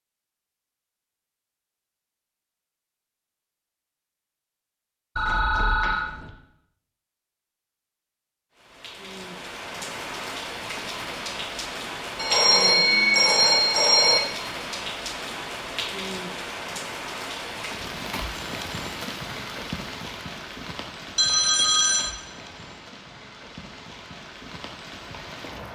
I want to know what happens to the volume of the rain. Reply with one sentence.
The volume of the rain goes down.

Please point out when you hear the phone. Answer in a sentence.
You can hear the phone from 5.2 to 6.3 s, from 12.2 to 14.2 s and from 21.1 to 22.1 s.